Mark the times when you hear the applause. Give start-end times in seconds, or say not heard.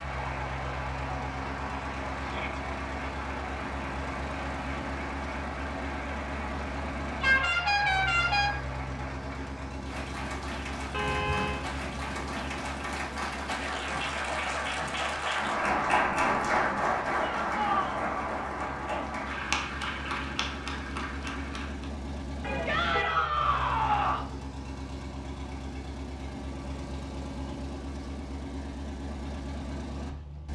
0.0-21.9.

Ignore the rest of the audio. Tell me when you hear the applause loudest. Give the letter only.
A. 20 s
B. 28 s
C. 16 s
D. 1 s
C.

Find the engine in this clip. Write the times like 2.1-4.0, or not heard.
0.0-30.5.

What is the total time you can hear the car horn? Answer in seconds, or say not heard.
3 s.